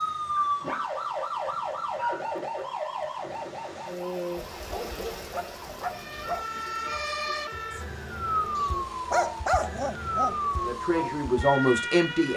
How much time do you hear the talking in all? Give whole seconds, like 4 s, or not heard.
2 s.